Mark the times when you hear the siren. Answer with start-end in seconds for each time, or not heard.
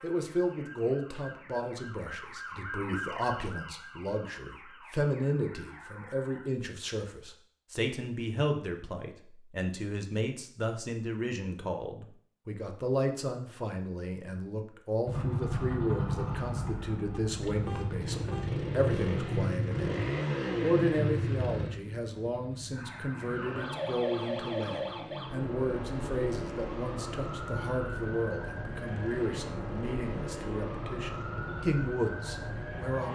0.0-6.5, 22.7-33.1.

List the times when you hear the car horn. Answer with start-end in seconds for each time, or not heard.
17.1-18.5.